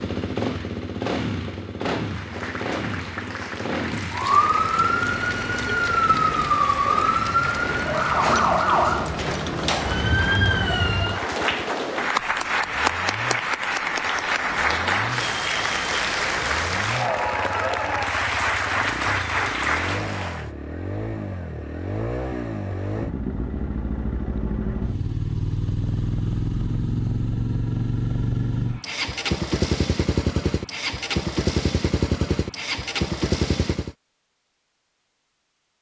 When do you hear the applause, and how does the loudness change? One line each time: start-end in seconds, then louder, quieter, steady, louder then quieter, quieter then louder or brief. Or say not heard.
2.0-20.5 louder.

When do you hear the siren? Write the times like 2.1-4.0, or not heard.
4.1-11.3.